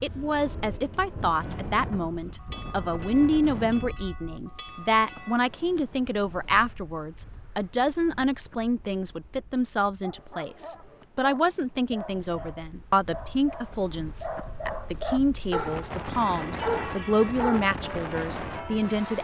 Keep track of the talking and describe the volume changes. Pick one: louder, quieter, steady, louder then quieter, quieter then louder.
steady.